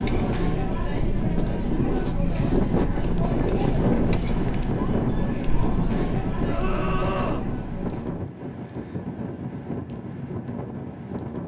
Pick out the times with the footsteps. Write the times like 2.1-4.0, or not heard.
not heard.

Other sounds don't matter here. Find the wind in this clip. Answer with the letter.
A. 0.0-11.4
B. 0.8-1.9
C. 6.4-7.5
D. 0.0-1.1
A.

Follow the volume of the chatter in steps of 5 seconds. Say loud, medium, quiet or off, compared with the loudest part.
loud, loud, off.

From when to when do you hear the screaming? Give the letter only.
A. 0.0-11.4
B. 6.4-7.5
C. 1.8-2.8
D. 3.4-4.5
B.